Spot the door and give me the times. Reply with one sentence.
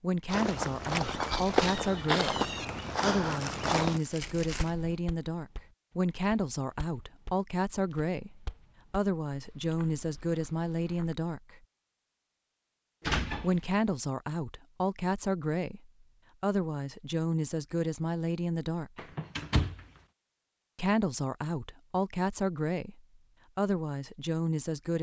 The door can be heard from 0.8 to 2.6 s, from 13.0 to 13.7 s and from 18.9 to 19.9 s.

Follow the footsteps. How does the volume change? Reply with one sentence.
The loudness of the footsteps goes down.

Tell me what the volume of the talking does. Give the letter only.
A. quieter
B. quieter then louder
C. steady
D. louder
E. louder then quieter
C.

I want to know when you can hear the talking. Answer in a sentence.
You can hear the talking from 0.0 to 11.6 s, from 13.4 to 19.1 s and from 20.8 to 24.9 s.